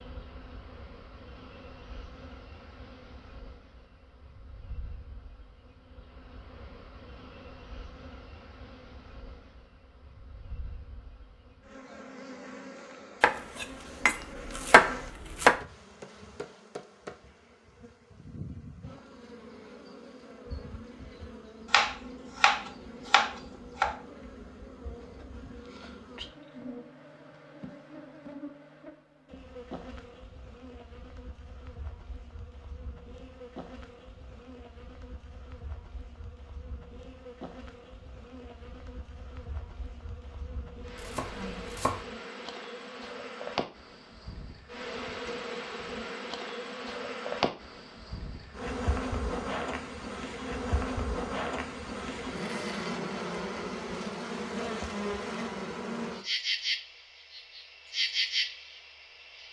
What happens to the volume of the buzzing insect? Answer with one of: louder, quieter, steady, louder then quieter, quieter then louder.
louder.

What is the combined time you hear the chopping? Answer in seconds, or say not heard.
6 s.